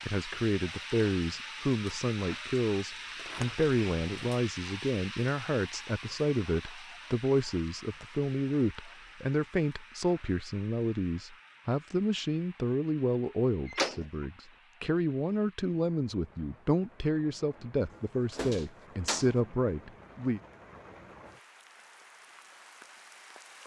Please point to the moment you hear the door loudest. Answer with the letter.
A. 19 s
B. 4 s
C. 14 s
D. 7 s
C.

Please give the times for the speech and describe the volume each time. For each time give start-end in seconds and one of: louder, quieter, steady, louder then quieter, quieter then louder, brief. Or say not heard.
0.1-20.4 steady.